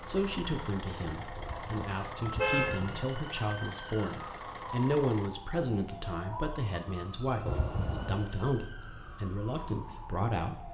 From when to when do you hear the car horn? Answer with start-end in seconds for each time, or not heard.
1.4-3.0, 7.5-8.2.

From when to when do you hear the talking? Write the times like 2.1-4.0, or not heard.
0.1-10.6.